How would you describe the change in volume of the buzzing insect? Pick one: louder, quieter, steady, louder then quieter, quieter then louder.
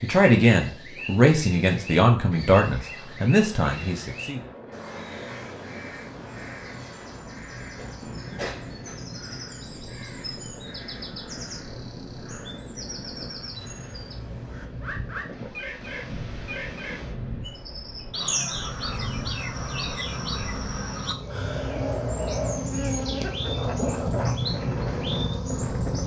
louder.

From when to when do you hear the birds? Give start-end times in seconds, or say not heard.
0.0-26.0.